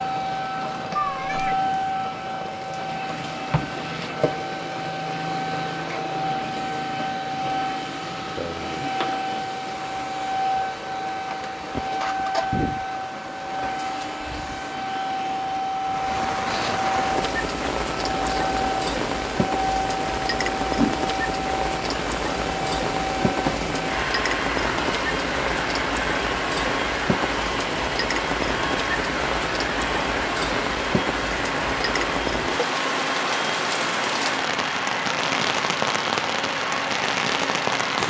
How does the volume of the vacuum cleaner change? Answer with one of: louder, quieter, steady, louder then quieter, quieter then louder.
steady.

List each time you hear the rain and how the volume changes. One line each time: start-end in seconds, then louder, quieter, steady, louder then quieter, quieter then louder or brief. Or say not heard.
0.0-38.0 louder.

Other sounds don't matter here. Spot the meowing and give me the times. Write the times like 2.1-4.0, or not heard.
0.9-1.6.